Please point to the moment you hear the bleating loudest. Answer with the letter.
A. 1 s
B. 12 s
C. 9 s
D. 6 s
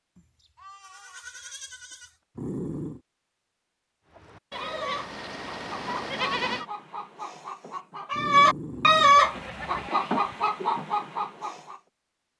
D.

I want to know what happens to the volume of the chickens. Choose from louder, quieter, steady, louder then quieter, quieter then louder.
louder then quieter.